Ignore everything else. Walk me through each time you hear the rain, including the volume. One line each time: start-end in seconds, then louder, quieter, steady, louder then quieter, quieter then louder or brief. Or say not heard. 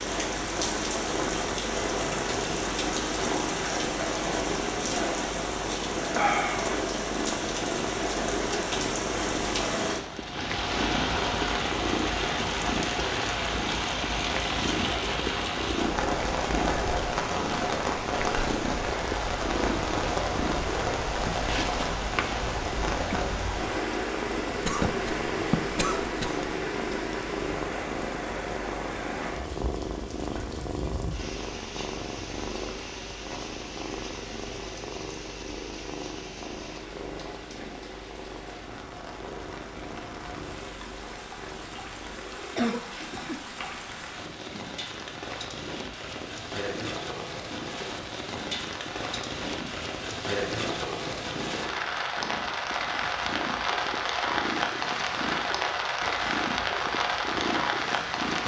0.0-58.4 quieter then louder.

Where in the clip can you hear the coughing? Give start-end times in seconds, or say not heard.
24.6-26.4, 42.3-43.4.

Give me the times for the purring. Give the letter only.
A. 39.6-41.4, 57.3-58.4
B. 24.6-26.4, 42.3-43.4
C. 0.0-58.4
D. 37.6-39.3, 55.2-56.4
C.